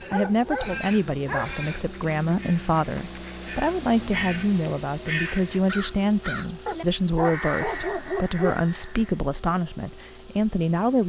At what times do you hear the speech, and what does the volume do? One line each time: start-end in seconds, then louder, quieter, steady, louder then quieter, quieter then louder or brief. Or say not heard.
0.0-11.0 steady.